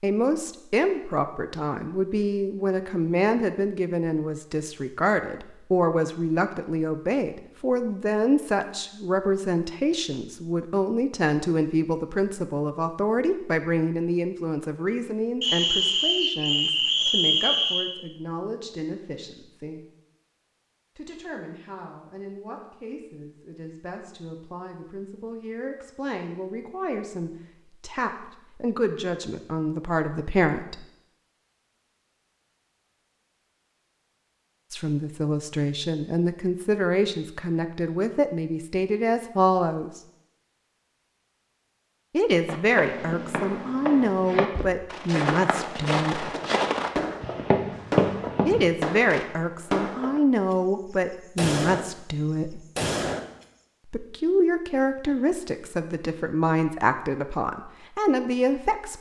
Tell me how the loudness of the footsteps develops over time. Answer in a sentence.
The volume of the footsteps goes up.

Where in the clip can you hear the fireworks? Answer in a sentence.
The fireworks can be heard from 46.1 to 50.5 s, from 51.4 to 51.9 s and from 52.8 to 53.2 s.